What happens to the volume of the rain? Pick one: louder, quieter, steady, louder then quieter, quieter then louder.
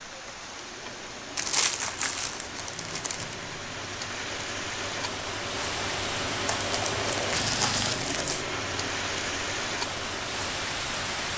louder.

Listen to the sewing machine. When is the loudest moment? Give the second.
7 s.